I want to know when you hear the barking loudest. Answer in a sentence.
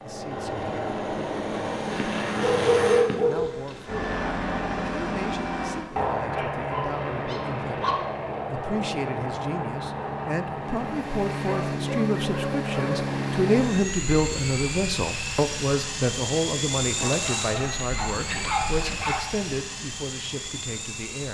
The loudest moment of the barking is at 3 seconds.